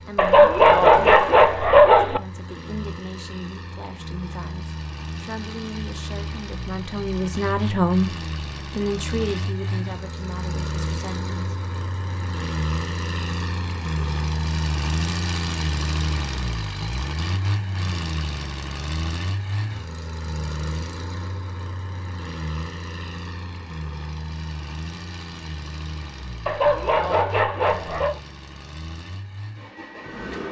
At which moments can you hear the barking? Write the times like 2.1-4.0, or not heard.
0.1-2.2, 26.4-28.2.